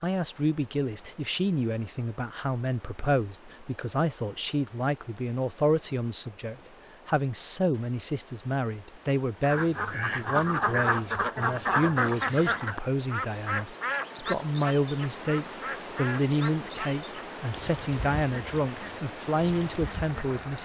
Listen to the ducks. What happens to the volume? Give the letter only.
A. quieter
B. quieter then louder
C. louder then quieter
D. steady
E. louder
A.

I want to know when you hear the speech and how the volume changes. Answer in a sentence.
You can hear the speech from 0.0 to 20.6 s, at a steady volume.